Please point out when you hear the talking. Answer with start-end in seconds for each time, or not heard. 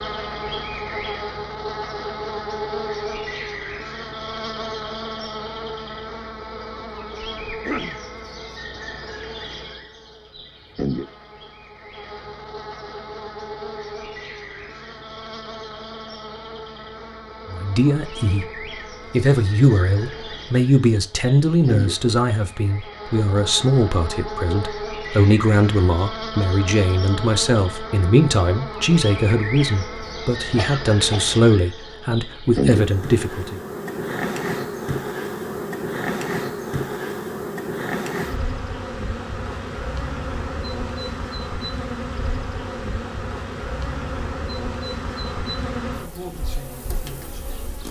17.5-18.4, 19.1-33.6.